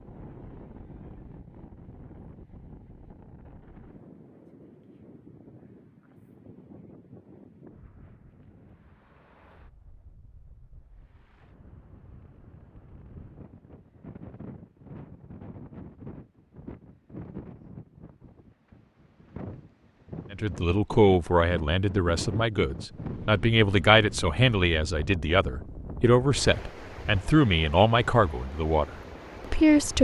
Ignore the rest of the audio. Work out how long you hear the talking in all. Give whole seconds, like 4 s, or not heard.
10 s.